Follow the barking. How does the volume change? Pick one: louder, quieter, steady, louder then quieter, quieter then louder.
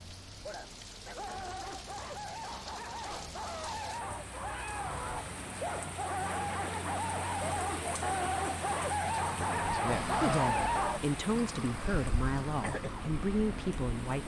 louder.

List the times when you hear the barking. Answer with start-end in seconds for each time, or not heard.
0.4-11.0.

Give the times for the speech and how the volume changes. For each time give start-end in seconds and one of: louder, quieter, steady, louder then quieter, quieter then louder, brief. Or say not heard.
9.3-14.2 steady.